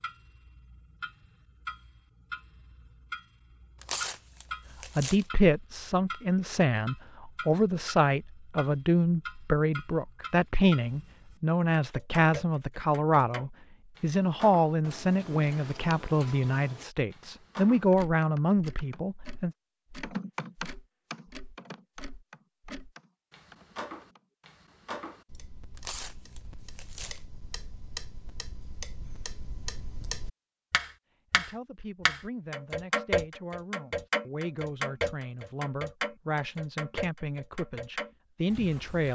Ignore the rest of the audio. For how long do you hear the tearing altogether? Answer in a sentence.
You can hear the tearing for 3 seconds altogether.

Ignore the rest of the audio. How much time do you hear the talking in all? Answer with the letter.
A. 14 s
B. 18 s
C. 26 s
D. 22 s
D.